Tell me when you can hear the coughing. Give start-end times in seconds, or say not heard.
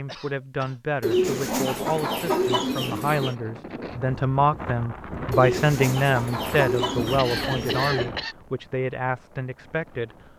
0.1-1.3, 7.2-8.3.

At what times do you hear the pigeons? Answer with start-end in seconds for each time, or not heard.
1.0-3.4, 5.3-8.1.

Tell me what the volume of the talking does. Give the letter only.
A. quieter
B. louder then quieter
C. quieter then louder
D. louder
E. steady
B.